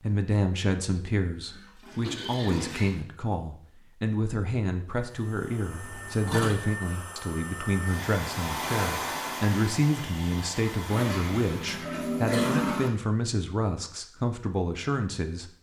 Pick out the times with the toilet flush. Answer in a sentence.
You can hear the toilet flush from 1.5 to 3.0 s, from 5.7 to 6.5 s and from 10.8 to 12.9 s.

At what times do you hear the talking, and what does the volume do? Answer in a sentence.
The talking can be heard from 0.0 to 15.5 s, at a steady volume.